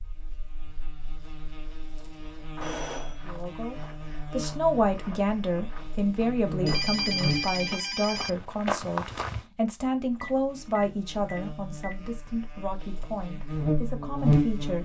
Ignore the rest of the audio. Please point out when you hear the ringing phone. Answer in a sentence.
The ringing phone can be heard from 2.6 to 3.2 s, from 6.7 to 8.3 s and from 10.2 to 12.2 s.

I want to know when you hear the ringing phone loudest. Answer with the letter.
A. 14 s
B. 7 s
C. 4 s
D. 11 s
B.